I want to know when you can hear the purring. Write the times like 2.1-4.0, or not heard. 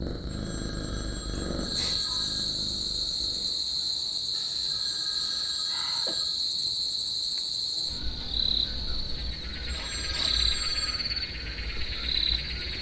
0.0-3.5.